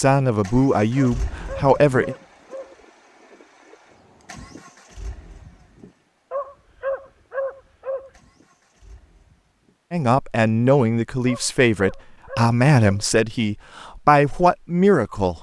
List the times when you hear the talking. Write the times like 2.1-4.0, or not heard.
0.0-2.1, 9.9-15.3.